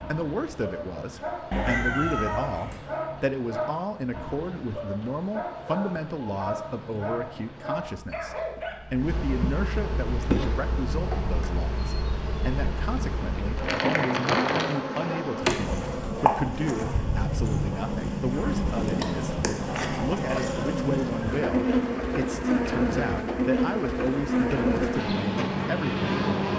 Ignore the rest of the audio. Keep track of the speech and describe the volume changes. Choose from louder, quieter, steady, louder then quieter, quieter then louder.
steady.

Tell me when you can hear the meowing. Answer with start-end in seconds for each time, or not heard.
1.5-2.8.